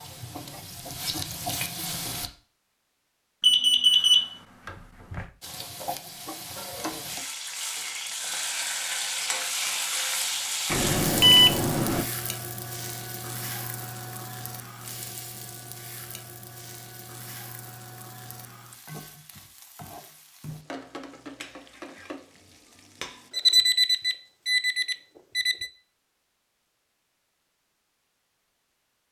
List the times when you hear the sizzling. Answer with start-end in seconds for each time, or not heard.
0.0-2.3, 5.4-23.3.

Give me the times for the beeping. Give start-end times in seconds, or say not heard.
3.4-5.2, 10.7-12.1, 23.3-25.7.